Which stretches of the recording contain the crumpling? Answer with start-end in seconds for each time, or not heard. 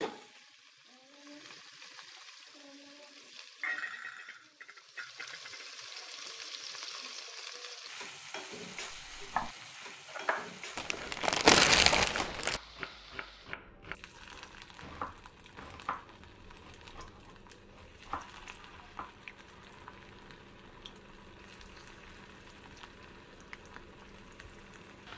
10.8-12.6.